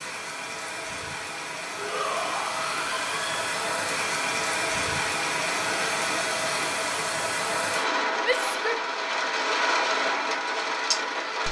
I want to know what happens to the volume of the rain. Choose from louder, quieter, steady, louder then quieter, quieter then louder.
louder.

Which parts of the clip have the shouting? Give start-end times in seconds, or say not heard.
1.8-3.5, 8.2-8.8.